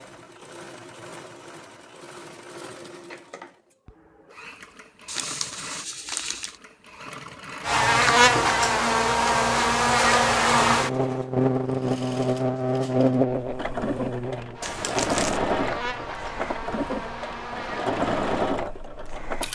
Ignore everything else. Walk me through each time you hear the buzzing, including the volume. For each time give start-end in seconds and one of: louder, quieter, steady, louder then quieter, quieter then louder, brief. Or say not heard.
7.6-19.1 quieter.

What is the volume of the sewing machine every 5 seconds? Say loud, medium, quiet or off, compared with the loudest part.
quiet, quiet, medium, loud.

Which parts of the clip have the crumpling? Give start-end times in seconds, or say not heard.
5.0-6.5, 14.6-15.4.